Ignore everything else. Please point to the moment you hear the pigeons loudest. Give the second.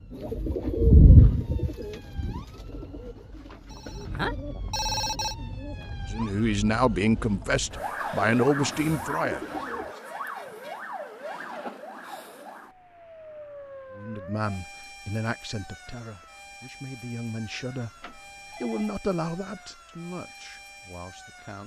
1 s.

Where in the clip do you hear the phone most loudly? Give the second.
5 s.